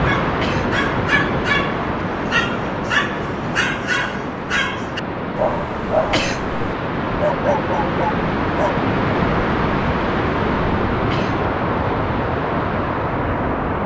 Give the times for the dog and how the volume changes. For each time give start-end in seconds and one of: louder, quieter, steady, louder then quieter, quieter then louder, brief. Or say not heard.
0.0-8.8 steady.